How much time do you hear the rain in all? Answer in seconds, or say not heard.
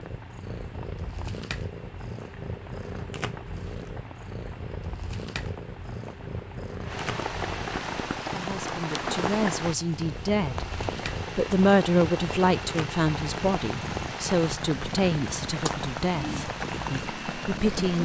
18 s.